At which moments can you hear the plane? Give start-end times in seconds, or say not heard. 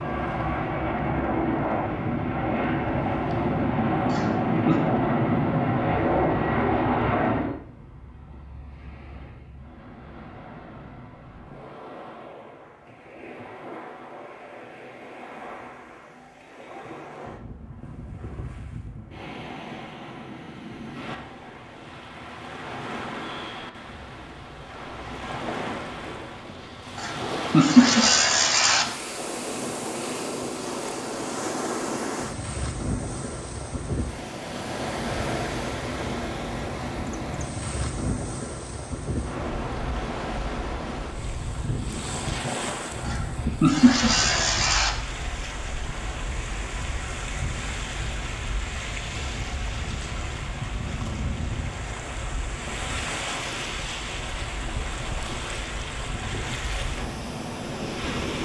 0.0-7.5.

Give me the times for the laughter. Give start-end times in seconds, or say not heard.
4.0-4.8, 26.9-28.9, 43.0-44.9.